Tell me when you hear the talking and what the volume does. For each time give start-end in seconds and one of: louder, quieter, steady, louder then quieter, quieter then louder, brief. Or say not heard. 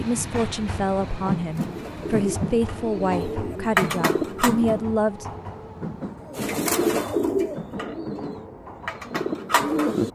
0.0-5.2 steady.